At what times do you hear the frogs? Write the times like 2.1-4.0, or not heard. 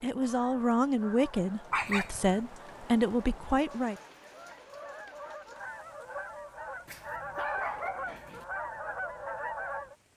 not heard.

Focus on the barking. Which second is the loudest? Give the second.
2 s.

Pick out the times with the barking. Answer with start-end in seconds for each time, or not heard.
1.7-2.4, 6.8-8.4.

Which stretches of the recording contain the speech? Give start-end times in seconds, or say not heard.
0.0-4.0.